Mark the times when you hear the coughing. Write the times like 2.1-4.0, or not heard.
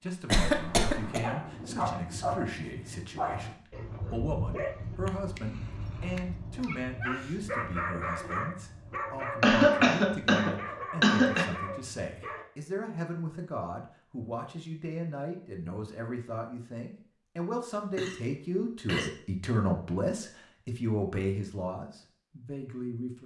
0.3-1.2, 9.4-11.6, 17.8-19.1.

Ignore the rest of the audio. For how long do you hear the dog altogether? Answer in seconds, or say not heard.
11 s.